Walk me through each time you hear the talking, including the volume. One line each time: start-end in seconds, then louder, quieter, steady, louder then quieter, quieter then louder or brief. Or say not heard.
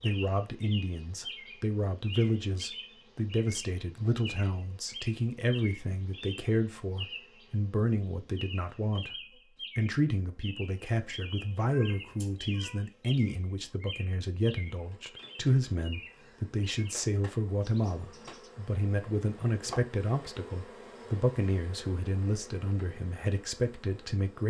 0.0-24.4 steady.